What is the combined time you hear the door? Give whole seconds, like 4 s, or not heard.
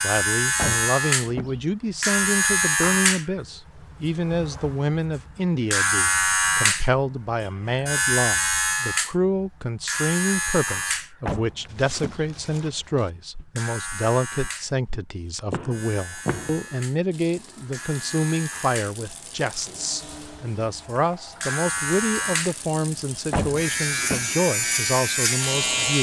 3 s.